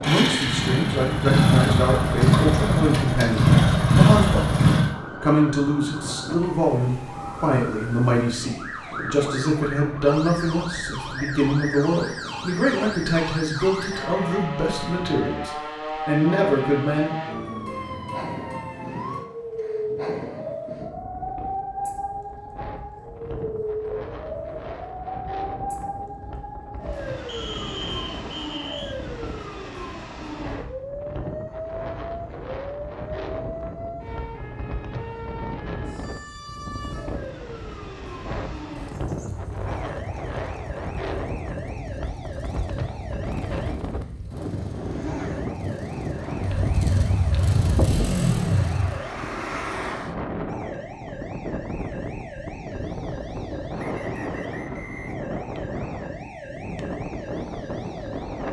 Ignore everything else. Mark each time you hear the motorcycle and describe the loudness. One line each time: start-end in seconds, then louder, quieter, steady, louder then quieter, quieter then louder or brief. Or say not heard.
0.0-5.0 louder
38.6-49.0 louder.